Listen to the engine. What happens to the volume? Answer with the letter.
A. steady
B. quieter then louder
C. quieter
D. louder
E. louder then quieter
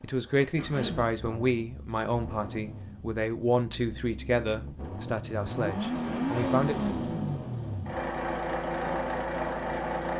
D.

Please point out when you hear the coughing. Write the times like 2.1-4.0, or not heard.
0.6-1.1, 5.9-6.4.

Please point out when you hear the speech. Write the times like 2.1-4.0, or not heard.
0.0-6.8.